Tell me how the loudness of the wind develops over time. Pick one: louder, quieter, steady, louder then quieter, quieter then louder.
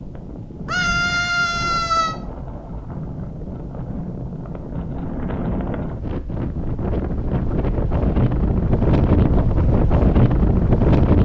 louder.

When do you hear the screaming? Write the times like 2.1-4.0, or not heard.
0.7-2.1.